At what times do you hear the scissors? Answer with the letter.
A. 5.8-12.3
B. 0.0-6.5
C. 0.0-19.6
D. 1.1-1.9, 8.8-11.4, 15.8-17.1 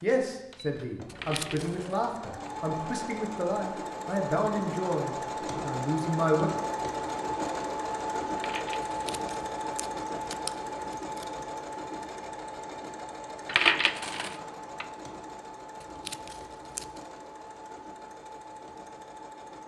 D.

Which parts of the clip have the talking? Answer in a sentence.
You can hear the talking from 0.0 to 6.5 s.